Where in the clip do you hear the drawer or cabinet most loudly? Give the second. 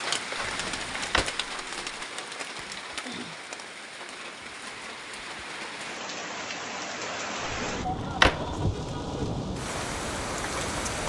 8 s.